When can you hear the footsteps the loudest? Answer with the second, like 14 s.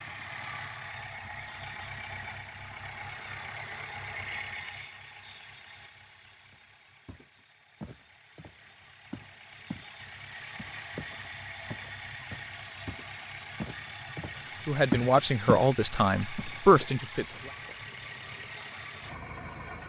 15 s.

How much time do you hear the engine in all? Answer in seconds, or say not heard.
20 s.